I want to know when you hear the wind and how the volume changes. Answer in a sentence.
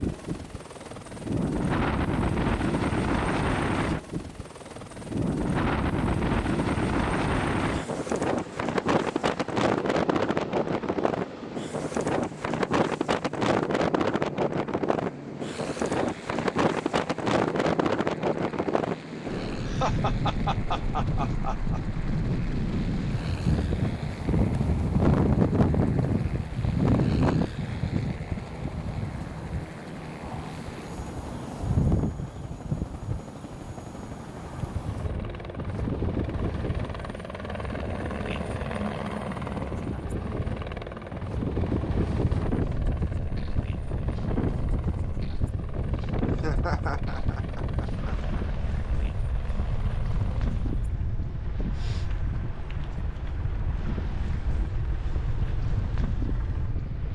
The wind can be heard from 0.0 to 57.1 s, getting quieter.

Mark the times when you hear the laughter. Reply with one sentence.
The laughter can be heard from 19.6 to 22.0 s and from 46.2 to 48.4 s.